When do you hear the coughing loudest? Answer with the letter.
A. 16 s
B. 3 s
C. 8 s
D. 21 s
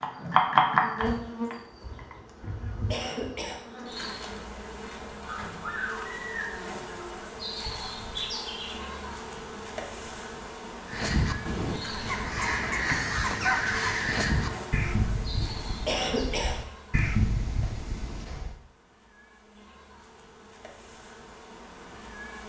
A.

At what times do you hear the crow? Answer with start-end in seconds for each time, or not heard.
10.8-18.6.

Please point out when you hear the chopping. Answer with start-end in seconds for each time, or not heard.
0.0-2.1.